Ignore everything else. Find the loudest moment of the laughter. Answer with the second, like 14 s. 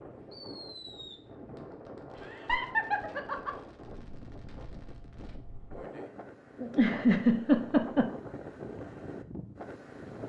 7 s.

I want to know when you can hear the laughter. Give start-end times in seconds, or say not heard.
2.2-3.5, 6.6-8.1.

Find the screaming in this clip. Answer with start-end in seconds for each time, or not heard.
not heard.